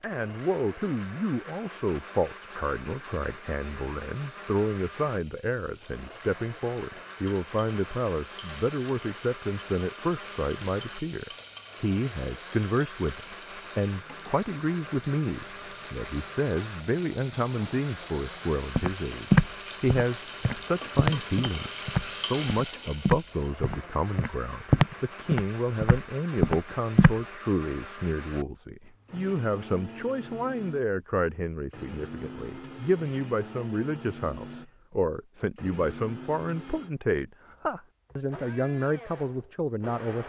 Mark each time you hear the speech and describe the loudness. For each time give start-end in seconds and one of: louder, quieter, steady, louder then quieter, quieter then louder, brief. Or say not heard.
0.0-40.2 steady.